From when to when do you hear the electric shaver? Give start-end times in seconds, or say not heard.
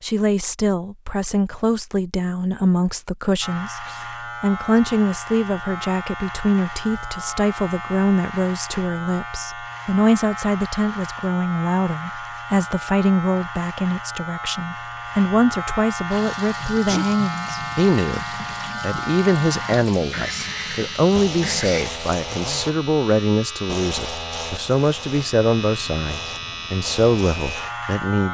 3.4-28.2.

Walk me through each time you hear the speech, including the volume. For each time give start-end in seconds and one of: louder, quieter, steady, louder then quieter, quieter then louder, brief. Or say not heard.
0.0-28.2 steady.